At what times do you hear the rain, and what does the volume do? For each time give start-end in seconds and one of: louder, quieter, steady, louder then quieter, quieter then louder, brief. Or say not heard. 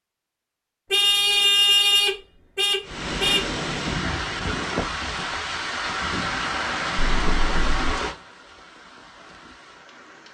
2.8-10.2 quieter.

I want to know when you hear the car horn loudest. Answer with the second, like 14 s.
2 s.